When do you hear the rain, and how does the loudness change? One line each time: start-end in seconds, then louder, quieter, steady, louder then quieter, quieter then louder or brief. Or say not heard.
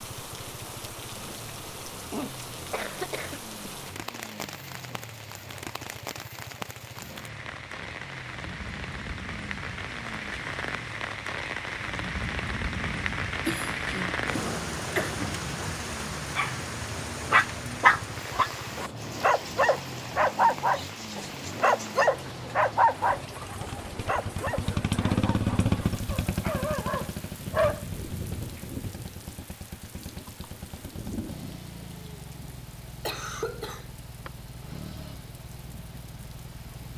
0.0-36.9 louder then quieter.